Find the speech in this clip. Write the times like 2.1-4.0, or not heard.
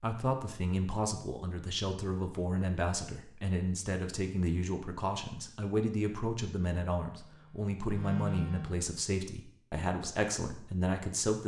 0.0-11.4.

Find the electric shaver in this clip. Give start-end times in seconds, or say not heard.
7.2-8.8.